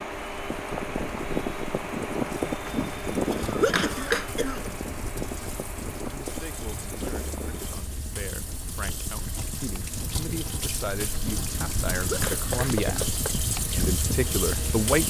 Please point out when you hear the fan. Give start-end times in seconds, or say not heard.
0.0-15.0.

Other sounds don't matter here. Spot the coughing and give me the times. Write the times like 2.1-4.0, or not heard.
2.6-4.8, 11.2-13.1.